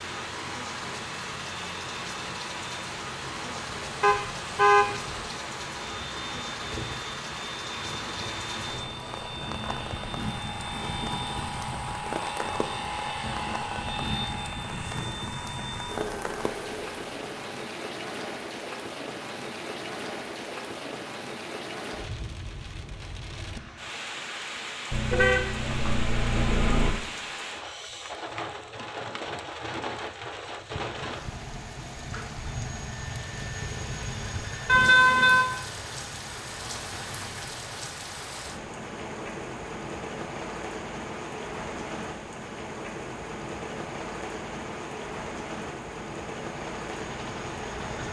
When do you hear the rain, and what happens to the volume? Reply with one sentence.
You can hear the rain from 0.0 to 48.0 s, at a steady volume.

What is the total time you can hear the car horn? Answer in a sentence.
The car horn can be heard for 4 seconds in total.